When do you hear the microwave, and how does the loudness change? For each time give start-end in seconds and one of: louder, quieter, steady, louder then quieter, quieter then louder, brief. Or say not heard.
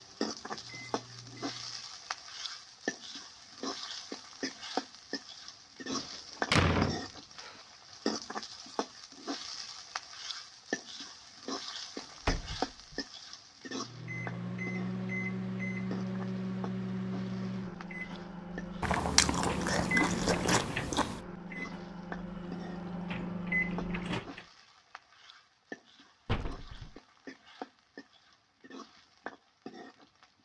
0.0-1.8 brief
13.7-24.4 steady.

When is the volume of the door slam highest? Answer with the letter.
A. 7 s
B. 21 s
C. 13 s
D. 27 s
A.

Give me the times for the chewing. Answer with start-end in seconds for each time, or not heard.
18.8-21.2.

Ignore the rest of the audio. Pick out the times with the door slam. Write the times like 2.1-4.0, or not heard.
5.9-7.5, 12.0-13.0, 26.2-26.9.